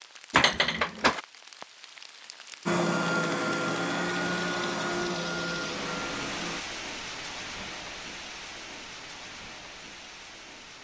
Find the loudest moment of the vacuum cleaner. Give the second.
3 s.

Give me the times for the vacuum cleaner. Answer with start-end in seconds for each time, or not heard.
2.6-6.6.